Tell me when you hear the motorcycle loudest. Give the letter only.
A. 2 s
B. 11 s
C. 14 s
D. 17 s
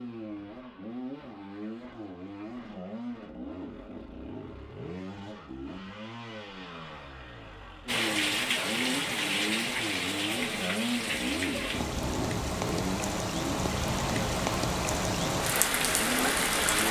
B.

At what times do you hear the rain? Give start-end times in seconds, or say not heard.
7.8-16.8.